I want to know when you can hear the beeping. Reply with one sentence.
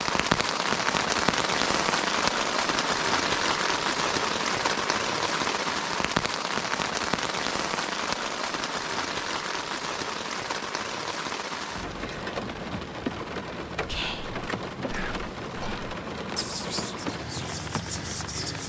You can't hear the beeping here.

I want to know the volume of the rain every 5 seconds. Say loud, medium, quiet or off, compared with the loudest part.
loud, loud, medium, medium.